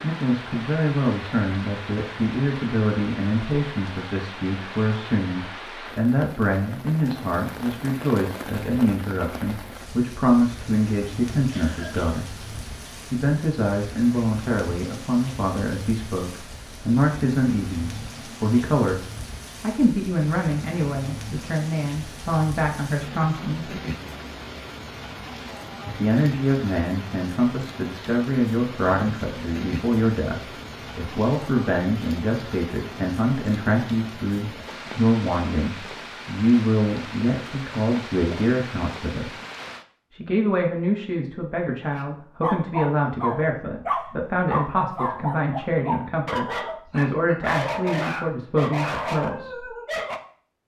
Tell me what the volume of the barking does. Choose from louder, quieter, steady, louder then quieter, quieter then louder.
steady.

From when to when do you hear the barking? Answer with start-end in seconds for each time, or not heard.
42.0-50.2.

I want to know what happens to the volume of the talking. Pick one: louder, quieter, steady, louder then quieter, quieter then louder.
steady.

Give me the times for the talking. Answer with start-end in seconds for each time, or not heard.
0.0-18.9, 19.6-23.8, 25.9-39.3, 40.1-49.7.